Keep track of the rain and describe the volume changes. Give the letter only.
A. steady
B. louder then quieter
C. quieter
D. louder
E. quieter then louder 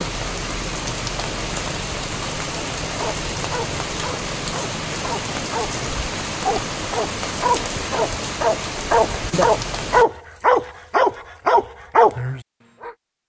A.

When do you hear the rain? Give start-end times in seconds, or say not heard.
0.0-10.1.